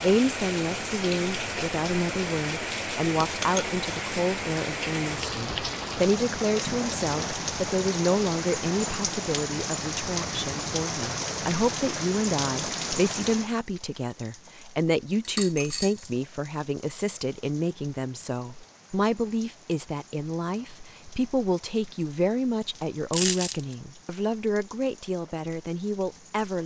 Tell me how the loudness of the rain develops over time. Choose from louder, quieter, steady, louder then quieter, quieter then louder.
quieter.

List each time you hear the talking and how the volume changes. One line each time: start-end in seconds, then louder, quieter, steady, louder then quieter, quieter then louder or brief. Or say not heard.
0.0-26.6 steady.